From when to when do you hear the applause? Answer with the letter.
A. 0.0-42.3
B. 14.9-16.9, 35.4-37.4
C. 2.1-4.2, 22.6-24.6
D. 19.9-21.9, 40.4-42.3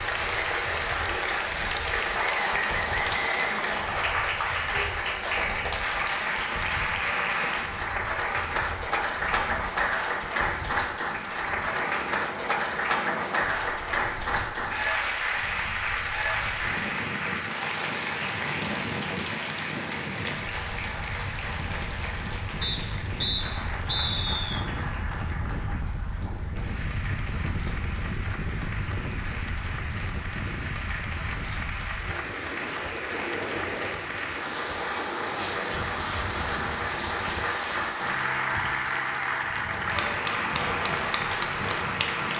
A.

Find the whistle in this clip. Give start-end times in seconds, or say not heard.
2.1-4.2, 22.6-24.6.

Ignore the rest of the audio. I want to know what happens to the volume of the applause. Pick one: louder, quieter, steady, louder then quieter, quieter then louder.
quieter then louder.